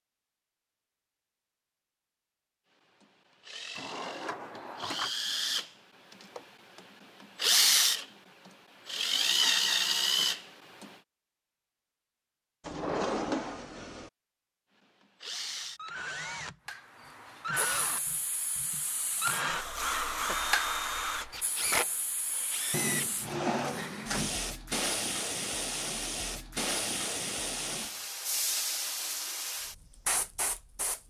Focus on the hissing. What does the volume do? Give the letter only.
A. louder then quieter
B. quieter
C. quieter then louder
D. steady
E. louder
E.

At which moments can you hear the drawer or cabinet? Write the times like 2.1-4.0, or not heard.
3.8-5.1, 12.6-14.1, 22.7-24.4.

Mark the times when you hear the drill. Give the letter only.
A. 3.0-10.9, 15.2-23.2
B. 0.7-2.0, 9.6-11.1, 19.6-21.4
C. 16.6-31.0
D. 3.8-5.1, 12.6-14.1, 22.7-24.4
A.